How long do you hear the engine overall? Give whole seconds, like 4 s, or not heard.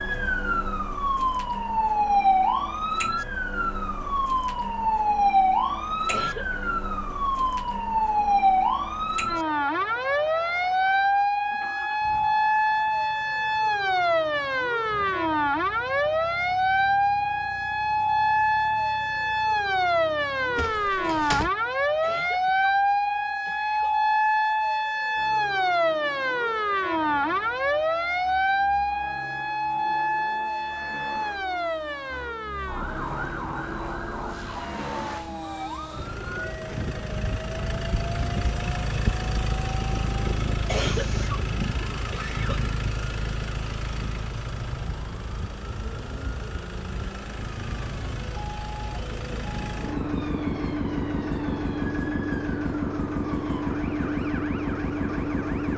51 s.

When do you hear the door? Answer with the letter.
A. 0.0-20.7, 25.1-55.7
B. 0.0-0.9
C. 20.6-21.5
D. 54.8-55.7
C.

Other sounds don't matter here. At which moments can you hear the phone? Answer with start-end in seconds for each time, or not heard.
not heard.